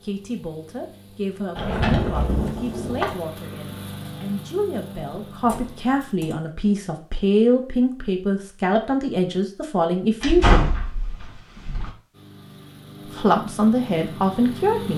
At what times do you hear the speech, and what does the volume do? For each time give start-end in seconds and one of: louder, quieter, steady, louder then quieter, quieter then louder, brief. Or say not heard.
0.0-10.7 louder
13.1-14.9 brief.